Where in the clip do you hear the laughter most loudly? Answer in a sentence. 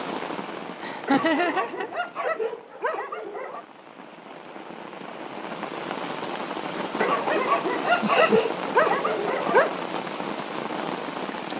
The volume of the laughter peaks at 1 second.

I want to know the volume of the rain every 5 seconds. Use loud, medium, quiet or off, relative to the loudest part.
medium, loud, loud.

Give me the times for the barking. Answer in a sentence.
The barking can be heard from 1.1 to 3.6 s and from 7.0 to 9.8 s.